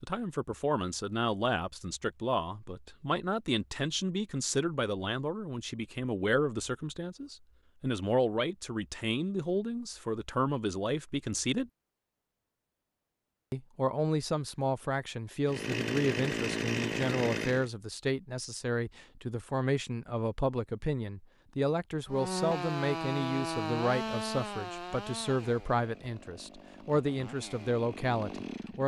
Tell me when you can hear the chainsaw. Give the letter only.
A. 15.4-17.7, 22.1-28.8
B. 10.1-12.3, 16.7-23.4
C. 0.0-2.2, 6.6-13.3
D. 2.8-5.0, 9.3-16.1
A.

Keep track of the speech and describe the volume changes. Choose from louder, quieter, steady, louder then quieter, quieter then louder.
steady.